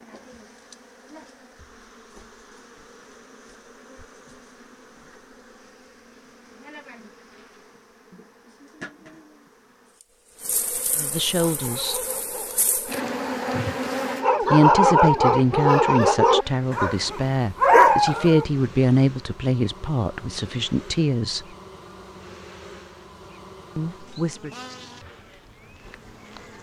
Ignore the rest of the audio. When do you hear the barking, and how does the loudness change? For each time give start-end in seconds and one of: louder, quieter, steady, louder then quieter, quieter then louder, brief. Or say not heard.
11.4-18.4 louder.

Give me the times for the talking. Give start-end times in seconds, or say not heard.
10.9-12.0, 14.5-21.4, 23.8-24.5.